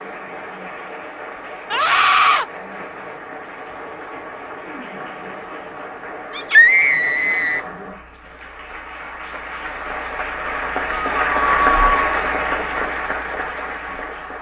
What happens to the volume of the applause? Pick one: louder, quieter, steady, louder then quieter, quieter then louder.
louder.